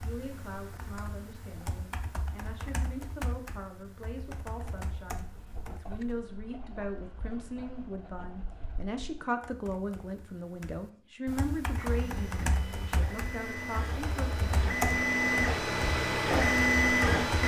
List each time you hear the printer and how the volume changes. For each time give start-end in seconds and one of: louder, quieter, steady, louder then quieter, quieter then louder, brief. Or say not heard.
11.7-17.4 louder.